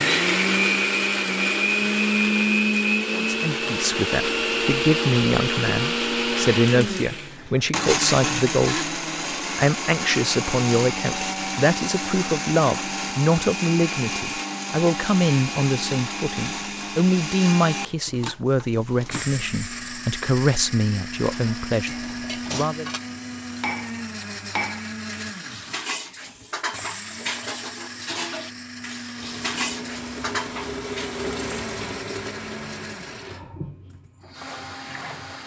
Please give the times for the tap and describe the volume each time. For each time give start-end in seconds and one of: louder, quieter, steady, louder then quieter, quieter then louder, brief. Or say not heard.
29.1-35.4 louder then quieter.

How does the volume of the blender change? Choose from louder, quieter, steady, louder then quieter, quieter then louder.
quieter.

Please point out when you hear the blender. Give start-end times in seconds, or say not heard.
0.0-35.4.